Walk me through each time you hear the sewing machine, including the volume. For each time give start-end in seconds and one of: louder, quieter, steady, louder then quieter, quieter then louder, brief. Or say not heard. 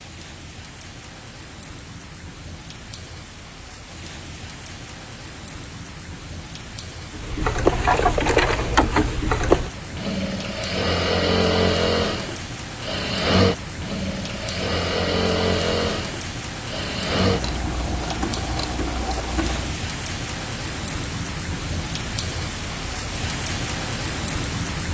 7.2-19.8 quieter.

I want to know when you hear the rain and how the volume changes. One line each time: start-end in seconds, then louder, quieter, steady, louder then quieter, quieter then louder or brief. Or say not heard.
0.0-24.8 louder.